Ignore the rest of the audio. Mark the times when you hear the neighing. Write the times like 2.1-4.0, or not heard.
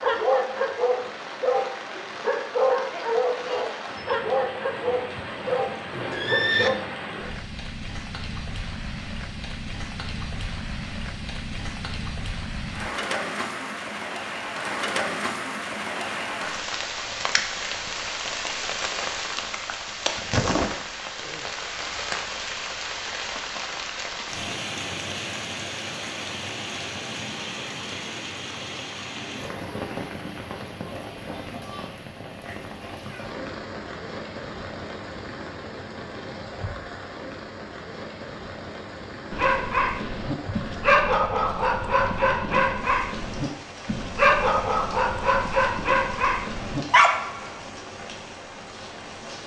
5.2-6.7.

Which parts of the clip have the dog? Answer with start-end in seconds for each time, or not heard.
0.0-6.8, 39.3-47.6.